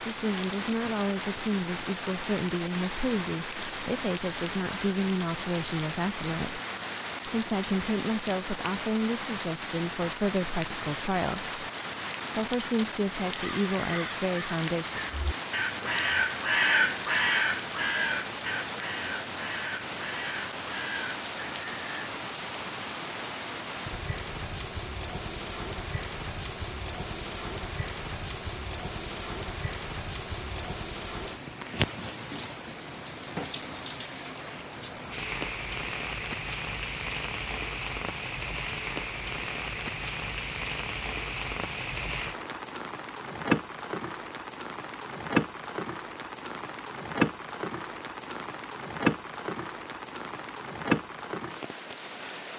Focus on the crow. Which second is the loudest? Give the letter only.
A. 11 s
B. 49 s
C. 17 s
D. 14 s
C.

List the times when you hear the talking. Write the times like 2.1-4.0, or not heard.
0.1-6.6, 7.2-11.6, 12.3-15.1.